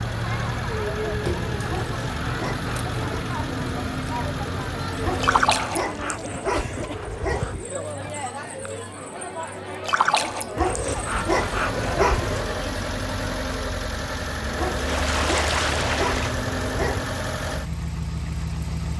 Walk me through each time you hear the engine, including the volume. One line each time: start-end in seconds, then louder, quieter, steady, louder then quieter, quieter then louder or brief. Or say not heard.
0.0-5.8 steady
10.8-18.9 steady.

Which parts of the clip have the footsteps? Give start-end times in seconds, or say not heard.
not heard.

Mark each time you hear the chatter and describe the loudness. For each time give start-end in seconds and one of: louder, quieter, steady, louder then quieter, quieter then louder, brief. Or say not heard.
0.0-13.5 steady.